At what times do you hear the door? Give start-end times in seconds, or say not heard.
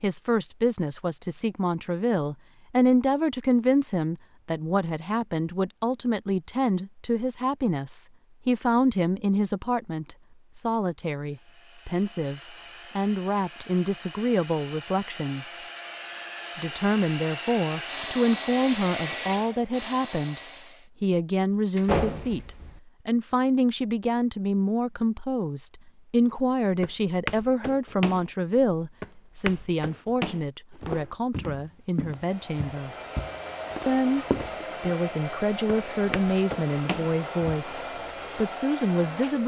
21.8-22.8.